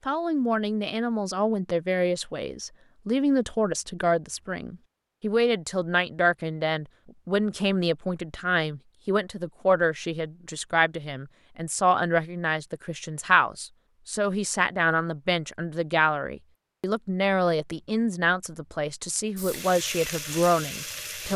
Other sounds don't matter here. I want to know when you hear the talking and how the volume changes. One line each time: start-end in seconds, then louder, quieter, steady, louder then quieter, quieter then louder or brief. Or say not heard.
0.1-21.3 steady.